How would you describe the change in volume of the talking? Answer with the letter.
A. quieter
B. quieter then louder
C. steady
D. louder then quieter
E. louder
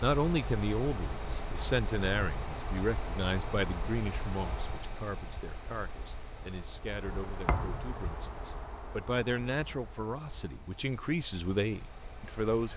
B.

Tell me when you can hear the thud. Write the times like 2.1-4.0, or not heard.
7.5-8.0.